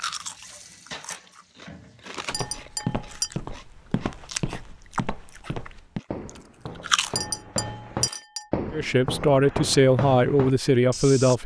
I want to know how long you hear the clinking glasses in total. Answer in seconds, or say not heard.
2 s.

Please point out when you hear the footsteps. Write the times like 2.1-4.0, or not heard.
2.3-11.3.